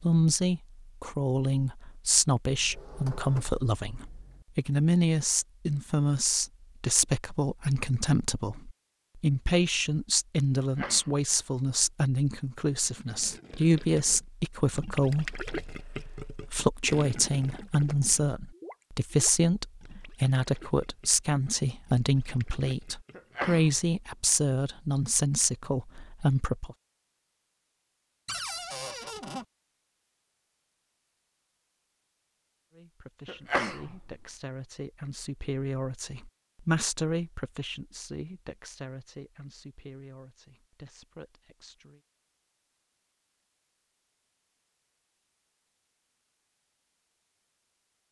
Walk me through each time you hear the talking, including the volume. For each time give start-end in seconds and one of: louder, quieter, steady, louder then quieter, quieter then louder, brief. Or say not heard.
0.0-26.8 steady
32.7-42.0 louder then quieter.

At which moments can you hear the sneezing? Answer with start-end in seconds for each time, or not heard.
10.6-11.2, 23.1-23.9, 33.2-34.1.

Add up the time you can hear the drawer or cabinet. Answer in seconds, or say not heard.
3 s.